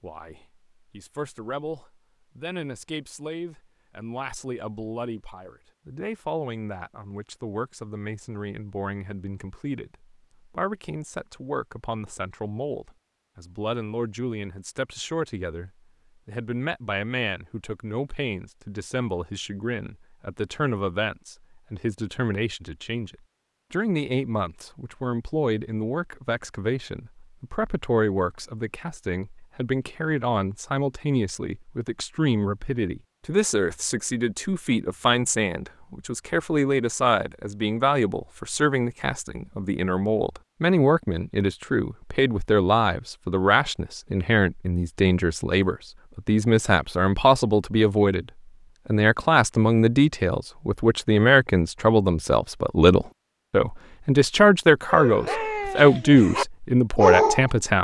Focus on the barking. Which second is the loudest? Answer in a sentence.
The loudest moment of the barking is at 57 seconds.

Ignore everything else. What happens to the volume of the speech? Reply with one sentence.
The loudness of the speech goes up.